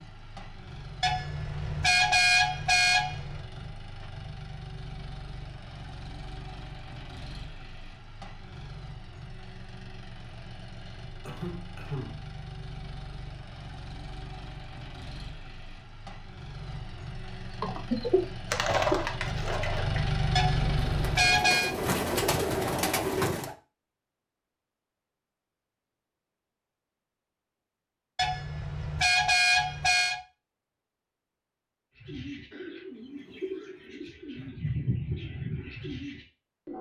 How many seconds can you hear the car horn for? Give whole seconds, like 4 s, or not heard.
6 s.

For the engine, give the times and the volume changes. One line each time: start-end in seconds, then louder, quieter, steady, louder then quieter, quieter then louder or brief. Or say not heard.
0.0-21.4 louder.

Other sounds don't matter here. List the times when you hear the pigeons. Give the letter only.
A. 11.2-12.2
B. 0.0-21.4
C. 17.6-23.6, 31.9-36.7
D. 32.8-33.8
C.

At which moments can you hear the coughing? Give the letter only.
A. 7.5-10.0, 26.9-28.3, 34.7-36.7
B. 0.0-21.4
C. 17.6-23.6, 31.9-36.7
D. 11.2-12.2
D.